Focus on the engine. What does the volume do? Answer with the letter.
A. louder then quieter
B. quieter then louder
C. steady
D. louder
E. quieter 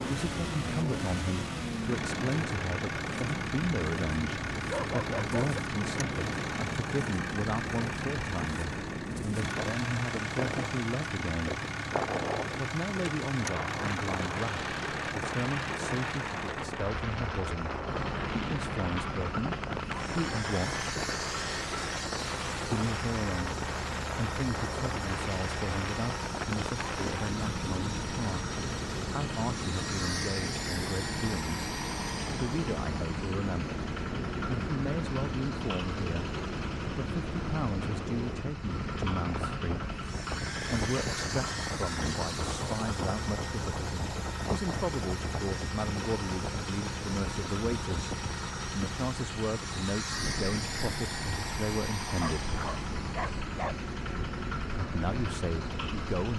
C.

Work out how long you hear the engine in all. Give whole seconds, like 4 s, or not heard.
56 s.